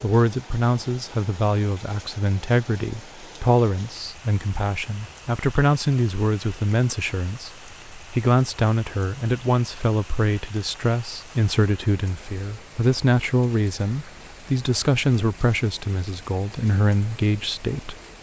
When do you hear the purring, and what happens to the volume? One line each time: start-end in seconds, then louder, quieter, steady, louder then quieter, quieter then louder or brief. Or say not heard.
not heard.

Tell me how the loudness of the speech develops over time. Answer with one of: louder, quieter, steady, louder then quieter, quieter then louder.
steady.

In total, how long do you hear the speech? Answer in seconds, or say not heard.
18 s.